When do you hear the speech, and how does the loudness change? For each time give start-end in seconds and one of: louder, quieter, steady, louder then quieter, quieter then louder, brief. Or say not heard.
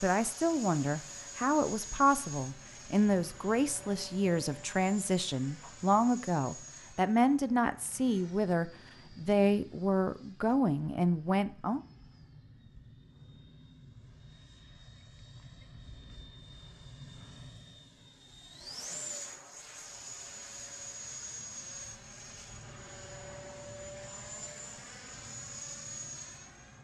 0.0-11.8 steady.